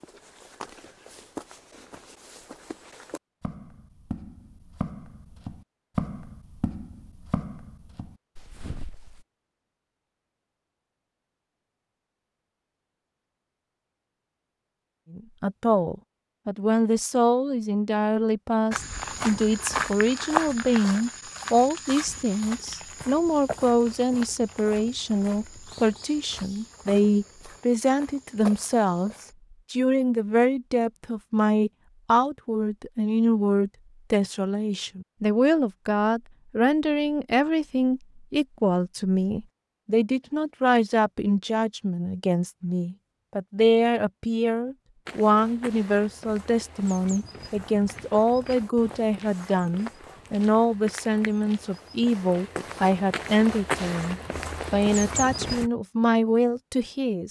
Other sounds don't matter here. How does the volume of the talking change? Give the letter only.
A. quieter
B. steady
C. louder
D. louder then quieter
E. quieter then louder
B.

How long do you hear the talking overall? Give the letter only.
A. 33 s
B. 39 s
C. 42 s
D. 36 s
C.